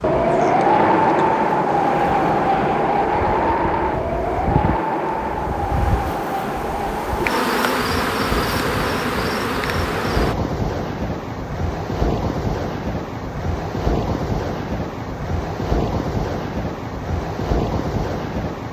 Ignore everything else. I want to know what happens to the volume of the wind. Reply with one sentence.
The loudness of the wind goes down.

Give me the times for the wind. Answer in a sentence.
You can hear the wind from 0.0 to 18.6 s.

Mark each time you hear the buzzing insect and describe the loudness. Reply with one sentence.
You can hear the buzzing insect from 0.0 to 10.3 s, getting louder.